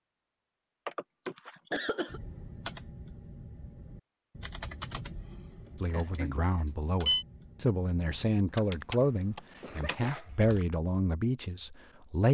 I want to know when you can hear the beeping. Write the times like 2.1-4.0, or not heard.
6.2-7.2.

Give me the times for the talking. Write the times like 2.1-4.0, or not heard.
5.8-12.2.